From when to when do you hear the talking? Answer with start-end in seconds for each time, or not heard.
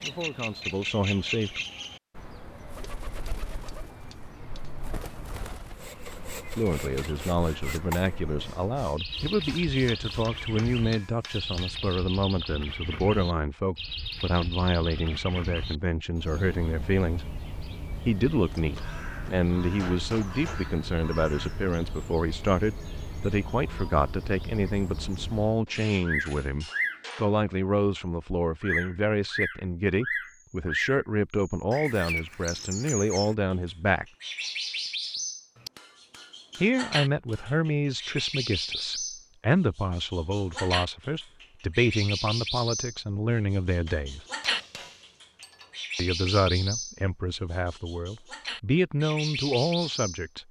0.0-1.6, 6.5-17.3, 18.1-34.0, 36.6-44.2, 46.0-50.4.